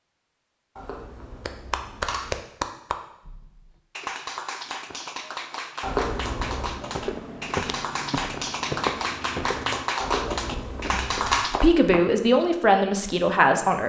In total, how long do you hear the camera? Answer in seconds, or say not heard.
4 s.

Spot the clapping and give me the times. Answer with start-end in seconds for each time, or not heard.
1.4-11.6.